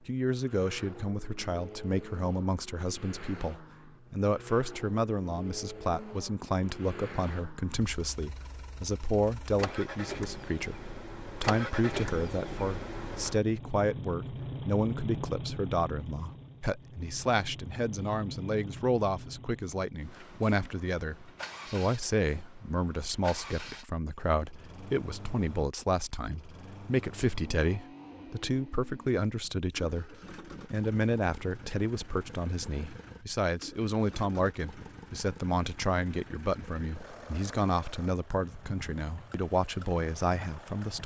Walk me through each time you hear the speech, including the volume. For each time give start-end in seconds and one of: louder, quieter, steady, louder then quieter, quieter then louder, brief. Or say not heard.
0.1-41.0 steady.